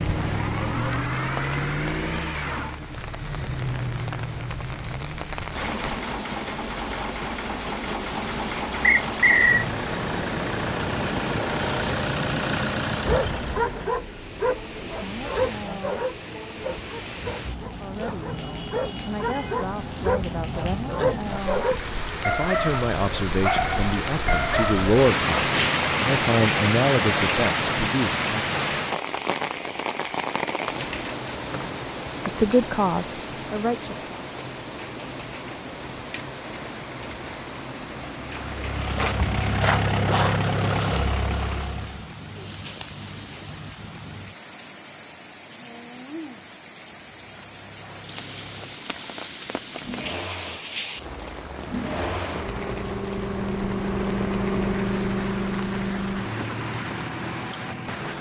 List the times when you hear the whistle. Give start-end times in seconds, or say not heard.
8.8-9.7, 31.5-32.3.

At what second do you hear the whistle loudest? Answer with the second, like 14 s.
9 s.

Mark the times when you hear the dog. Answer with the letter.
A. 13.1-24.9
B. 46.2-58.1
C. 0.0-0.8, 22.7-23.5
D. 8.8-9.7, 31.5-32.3
A.